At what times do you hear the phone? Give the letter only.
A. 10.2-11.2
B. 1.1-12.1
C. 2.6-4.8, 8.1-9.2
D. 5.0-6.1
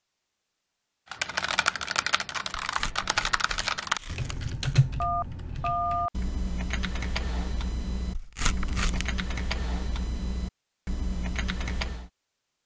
D.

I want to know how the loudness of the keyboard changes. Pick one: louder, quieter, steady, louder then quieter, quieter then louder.
quieter.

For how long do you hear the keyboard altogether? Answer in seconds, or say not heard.
11 s.